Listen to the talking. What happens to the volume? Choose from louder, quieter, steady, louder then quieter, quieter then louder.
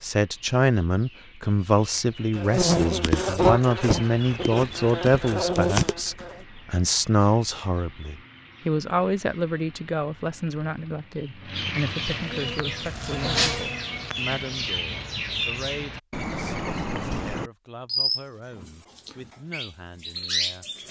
quieter.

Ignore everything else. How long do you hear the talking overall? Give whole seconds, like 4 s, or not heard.
21 s.